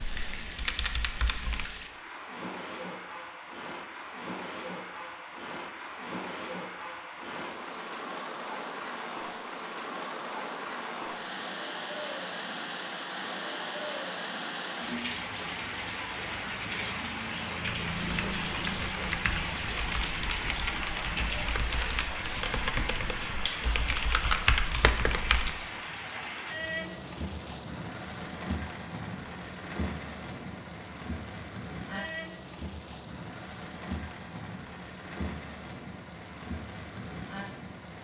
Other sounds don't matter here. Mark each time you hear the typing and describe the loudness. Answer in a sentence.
You can hear the typing briefly from 0.0 to 1.7 s; and from 17.6 to 25.5 s, getting louder.